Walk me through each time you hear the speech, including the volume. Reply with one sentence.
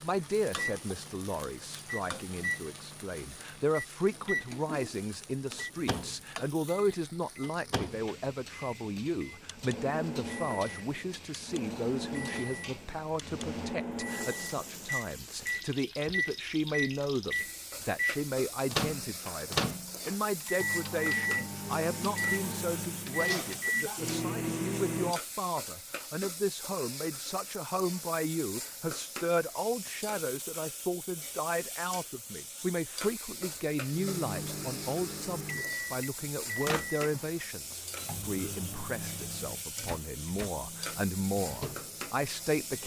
The speech can be heard from 0.0 to 42.8 s, at a steady volume.